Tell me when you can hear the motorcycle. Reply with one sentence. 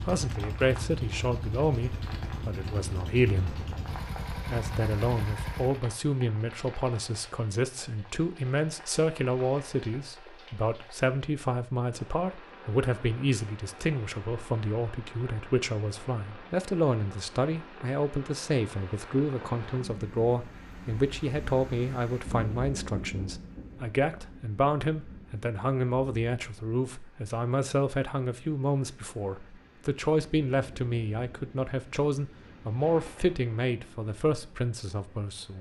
The motorcycle can be heard from 0.0 to 5.8 s.